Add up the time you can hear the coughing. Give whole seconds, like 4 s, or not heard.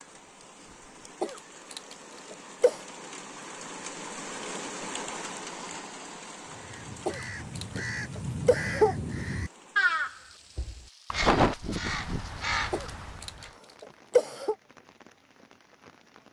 5 s.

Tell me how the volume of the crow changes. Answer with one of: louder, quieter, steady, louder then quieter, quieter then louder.
louder then quieter.